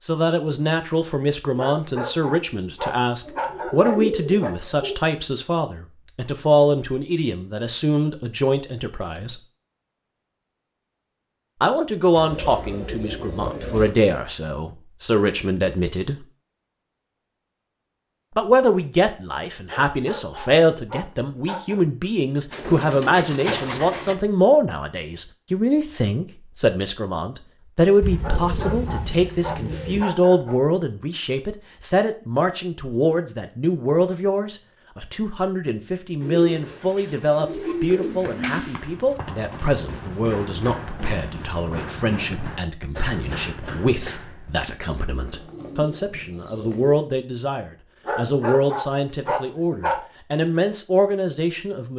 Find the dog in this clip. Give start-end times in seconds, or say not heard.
1.6-4.5, 19.6-21.9, 28.2-30.6, 48.0-50.0.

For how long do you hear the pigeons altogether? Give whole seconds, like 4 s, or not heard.
12 s.